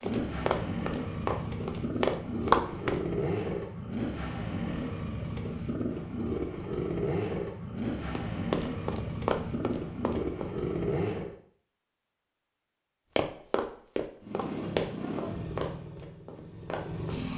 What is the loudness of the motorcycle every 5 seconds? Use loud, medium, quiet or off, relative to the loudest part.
loud, loud, loud, medium.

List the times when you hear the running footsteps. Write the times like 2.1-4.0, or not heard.
0.0-3.0, 8.2-10.4, 13.2-17.2.